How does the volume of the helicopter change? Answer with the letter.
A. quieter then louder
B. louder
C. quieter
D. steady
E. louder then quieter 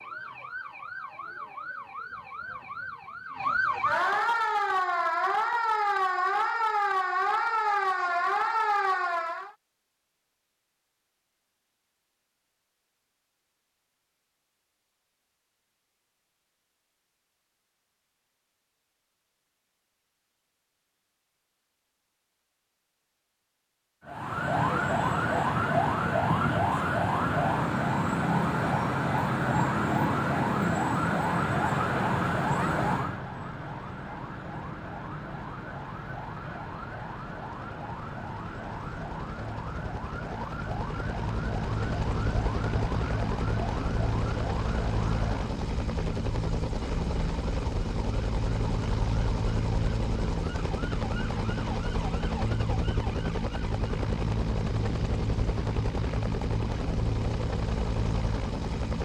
B.